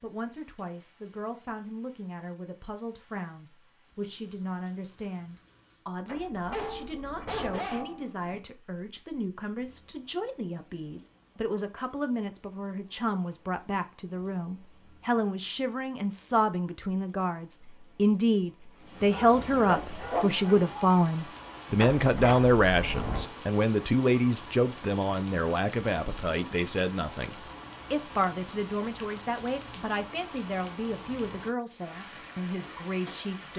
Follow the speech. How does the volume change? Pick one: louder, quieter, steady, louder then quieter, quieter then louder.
louder then quieter.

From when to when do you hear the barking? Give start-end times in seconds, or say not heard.
6.5-8.4, 19.1-20.7.